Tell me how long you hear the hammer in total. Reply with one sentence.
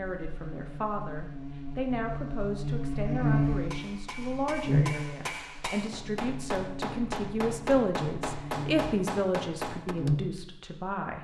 You can hear the hammer for 7 seconds altogether.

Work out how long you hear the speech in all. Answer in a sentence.
The speech can be heard for 11 seconds in total.